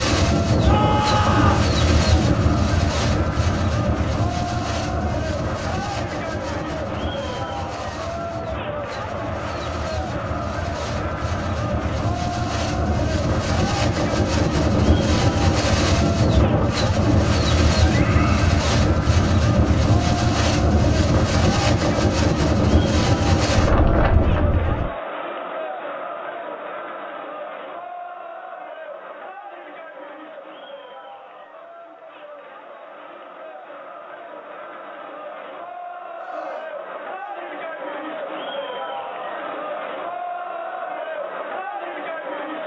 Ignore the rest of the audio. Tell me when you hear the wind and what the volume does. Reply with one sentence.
The wind can be heard from 0.0 to 24.9 s, getting quieter then louder.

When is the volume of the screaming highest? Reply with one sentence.
The loudest moment of the screaming is at 1 second.